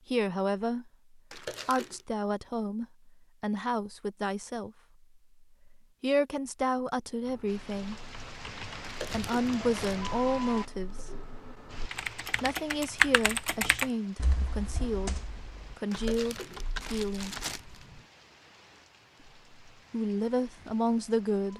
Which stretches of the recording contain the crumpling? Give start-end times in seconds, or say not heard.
1.3-2.0, 8.8-10.0, 15.9-17.9.